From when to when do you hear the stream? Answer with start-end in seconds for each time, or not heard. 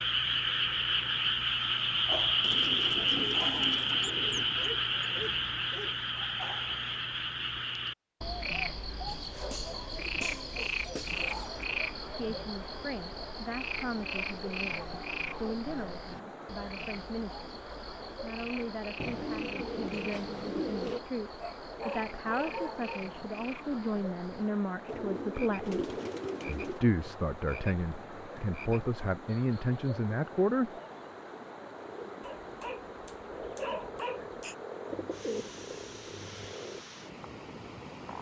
11.1-38.1.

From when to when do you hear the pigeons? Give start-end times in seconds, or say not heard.
2.4-4.5, 9.1-11.7, 19.0-21.0, 24.9-26.8, 34.9-36.6.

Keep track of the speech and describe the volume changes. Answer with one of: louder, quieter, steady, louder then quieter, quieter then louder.
louder.